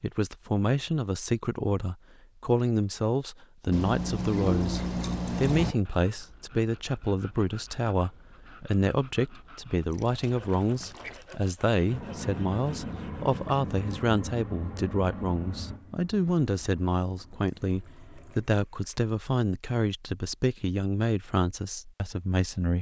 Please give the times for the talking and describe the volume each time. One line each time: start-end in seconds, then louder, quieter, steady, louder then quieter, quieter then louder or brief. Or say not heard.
0.0-22.7 steady.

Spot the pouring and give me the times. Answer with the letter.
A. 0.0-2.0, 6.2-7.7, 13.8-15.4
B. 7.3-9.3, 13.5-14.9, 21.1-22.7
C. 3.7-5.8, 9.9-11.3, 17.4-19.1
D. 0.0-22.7
C.